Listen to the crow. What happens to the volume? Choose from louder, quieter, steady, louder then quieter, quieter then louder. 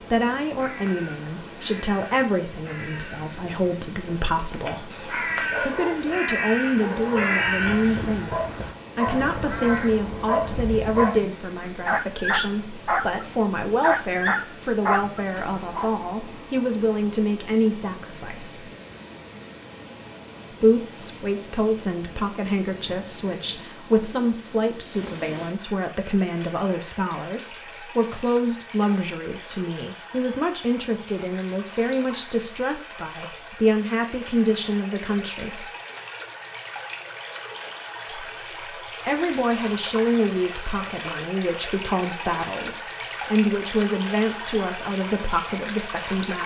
louder then quieter.